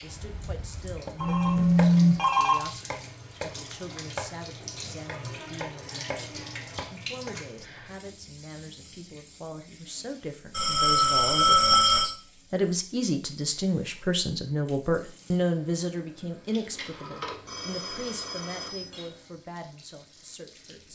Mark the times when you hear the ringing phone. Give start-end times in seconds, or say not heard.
1.1-2.6, 10.5-12.1, 16.5-19.1.